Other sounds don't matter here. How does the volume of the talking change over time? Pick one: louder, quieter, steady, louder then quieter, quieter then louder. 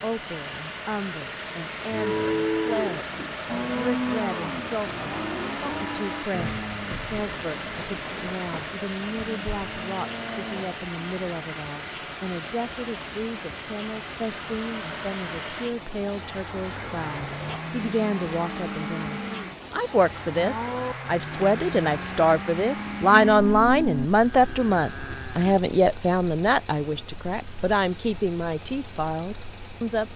louder.